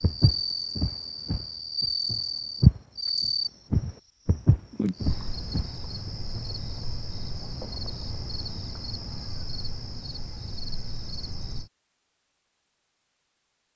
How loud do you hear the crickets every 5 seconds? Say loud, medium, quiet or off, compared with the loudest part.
loud, medium, medium.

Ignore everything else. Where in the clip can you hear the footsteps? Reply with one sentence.
The footsteps can be heard from 0.0 to 2.8 s and from 3.7 to 6.5 s.